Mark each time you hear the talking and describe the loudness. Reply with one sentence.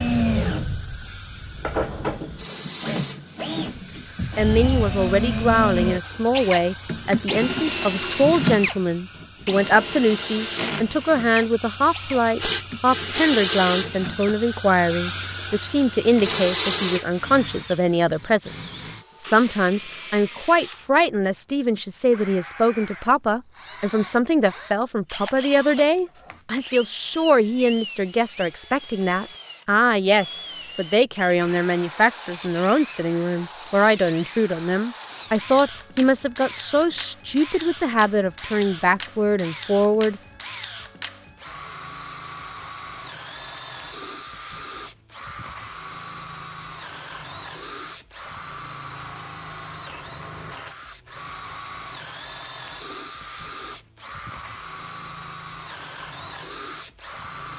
The talking can be heard from 4.3 to 40.2 s, at a steady volume.